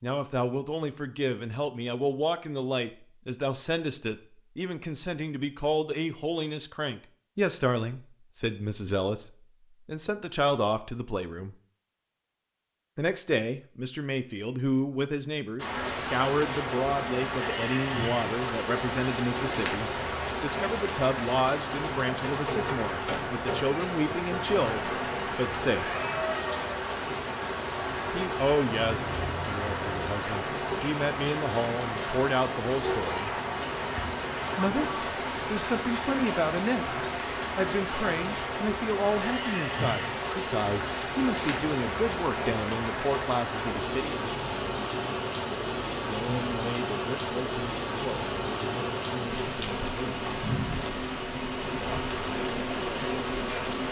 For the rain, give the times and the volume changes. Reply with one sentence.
The rain can be heard from 15.6 to 53.8 s, at a steady volume.